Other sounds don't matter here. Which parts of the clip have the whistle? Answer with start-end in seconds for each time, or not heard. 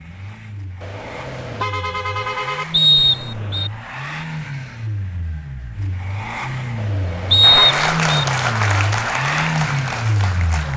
2.7-3.7, 7.3-8.2.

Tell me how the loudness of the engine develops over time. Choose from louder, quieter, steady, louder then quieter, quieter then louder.
louder.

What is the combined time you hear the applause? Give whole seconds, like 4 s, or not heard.
3 s.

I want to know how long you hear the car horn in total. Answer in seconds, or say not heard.
3 s.